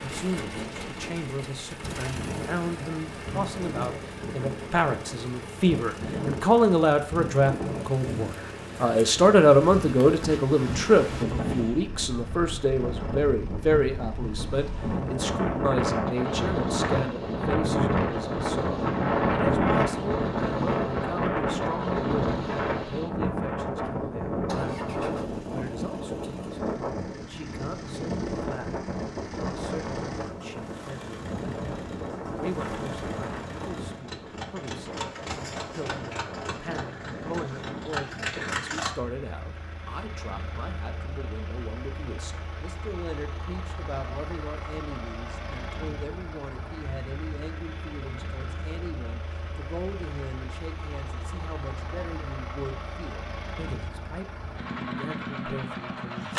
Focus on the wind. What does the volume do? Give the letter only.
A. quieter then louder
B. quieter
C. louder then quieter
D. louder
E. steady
C.